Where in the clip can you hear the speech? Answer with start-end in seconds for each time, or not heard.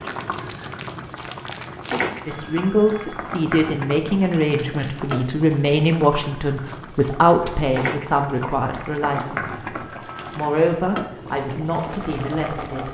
2.2-9.7, 10.3-12.8.